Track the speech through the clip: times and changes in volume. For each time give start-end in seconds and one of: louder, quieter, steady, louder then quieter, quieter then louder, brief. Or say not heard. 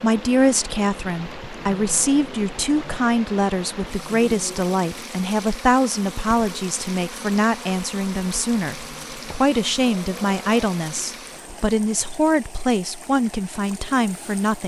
0.0-14.6 steady.